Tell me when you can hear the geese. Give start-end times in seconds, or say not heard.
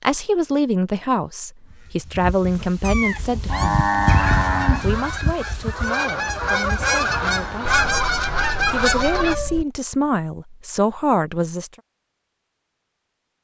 4.0-9.3.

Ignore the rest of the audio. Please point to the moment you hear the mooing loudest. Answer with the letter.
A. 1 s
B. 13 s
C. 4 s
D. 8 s
C.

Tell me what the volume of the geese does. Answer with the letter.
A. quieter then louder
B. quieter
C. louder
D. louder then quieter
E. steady
C.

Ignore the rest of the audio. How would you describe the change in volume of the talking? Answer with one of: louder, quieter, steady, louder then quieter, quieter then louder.
quieter then louder.